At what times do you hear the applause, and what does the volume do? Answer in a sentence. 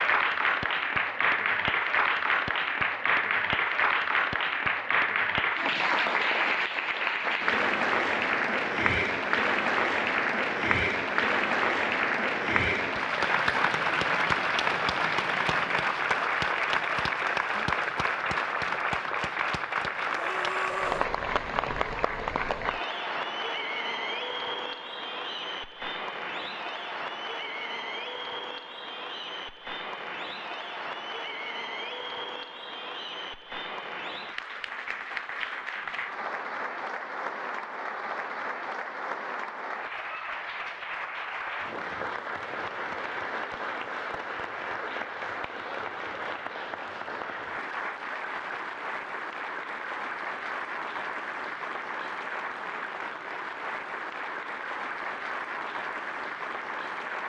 The applause can be heard from 0.0 to 57.2 s, getting quieter.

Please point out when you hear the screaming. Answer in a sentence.
The screaming can be heard from 20.1 to 21.1 s.